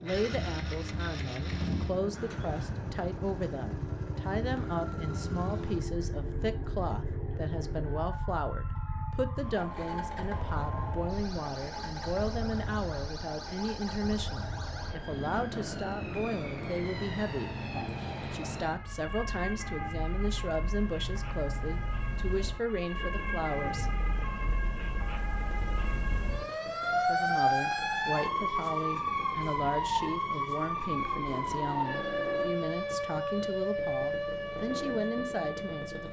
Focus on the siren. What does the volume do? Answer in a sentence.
The loudness of the siren goes up.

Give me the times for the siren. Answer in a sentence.
You can hear the siren from 0.0 to 36.0 s.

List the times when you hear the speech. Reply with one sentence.
The speech can be heard from 0.0 to 17.6 s, from 18.3 to 23.9 s and from 26.9 to 36.0 s.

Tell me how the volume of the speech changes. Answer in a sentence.
The loudness of the speech stays about the same.